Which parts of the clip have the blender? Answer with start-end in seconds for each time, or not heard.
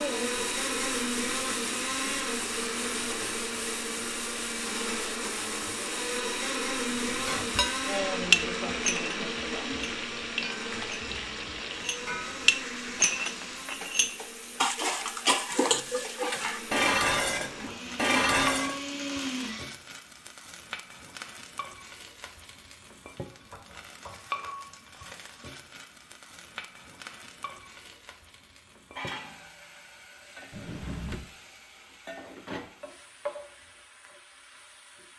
0.0-19.8.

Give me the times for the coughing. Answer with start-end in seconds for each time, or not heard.
not heard.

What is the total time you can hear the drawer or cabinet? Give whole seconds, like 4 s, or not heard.
2 s.